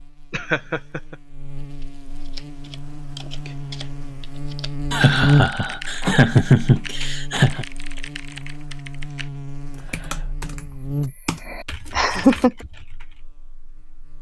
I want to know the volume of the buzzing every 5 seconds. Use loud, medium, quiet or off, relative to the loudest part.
medium, loud, medium.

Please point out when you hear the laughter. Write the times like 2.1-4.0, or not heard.
0.3-1.1, 4.9-7.7, 11.9-12.5.